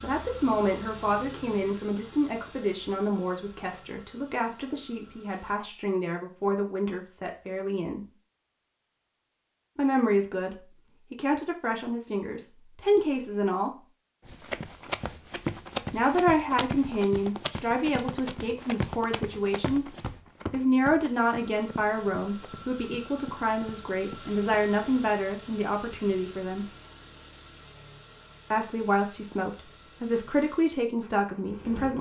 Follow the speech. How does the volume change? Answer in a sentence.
The loudness of the speech stays about the same.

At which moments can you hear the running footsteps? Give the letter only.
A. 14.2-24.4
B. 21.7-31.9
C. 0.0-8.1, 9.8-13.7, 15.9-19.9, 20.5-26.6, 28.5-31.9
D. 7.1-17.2
A.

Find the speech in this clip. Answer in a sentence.
The speech can be heard from 0.0 to 8.1 s, from 9.8 to 13.7 s, from 15.9 to 19.9 s, from 20.5 to 26.6 s and from 28.5 to 31.9 s.